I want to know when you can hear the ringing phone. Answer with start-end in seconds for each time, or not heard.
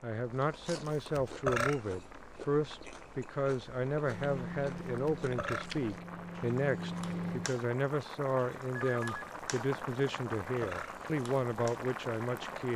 8.8-9.2.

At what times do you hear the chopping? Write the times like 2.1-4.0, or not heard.
not heard.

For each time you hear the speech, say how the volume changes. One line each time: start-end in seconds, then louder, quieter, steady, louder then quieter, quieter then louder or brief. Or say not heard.
0.0-12.7 steady.